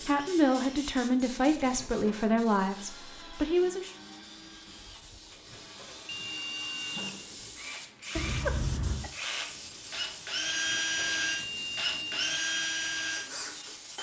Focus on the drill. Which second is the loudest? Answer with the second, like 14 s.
11 s.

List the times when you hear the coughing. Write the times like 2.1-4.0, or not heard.
8.2-9.1.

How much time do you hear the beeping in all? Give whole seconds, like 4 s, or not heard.
5 s.